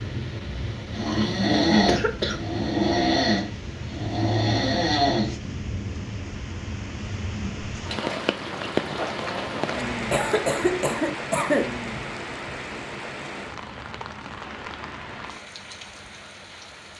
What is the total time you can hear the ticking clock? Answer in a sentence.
The ticking clock can't be heard in this clip.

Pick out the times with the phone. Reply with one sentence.
The phone can't be heard in this clip.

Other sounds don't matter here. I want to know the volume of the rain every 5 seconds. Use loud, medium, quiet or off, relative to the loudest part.
medium, loud, loud, medium.